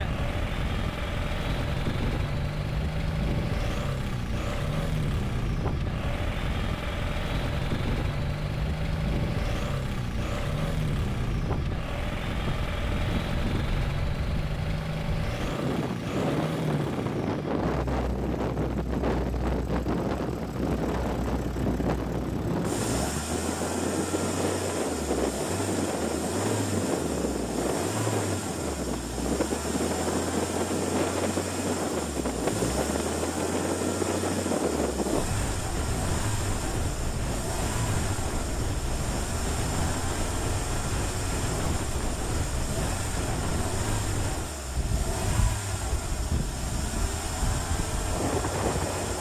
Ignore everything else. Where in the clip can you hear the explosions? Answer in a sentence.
You can't hear the explosions here.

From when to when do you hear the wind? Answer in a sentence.
You can hear the wind from 0.0 to 49.1 s.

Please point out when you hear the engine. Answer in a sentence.
The engine can be heard from 0.0 to 49.1 s.